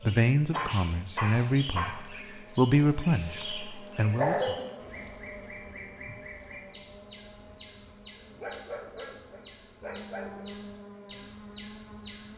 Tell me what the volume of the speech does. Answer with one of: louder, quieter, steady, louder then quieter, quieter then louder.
louder then quieter.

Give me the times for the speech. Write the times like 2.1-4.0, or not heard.
0.0-4.5.